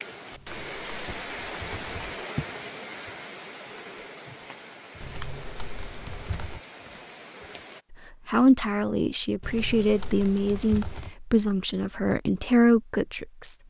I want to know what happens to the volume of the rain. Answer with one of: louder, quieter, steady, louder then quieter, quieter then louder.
quieter.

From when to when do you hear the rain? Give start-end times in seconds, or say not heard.
0.0-7.8.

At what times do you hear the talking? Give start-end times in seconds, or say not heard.
7.9-13.6.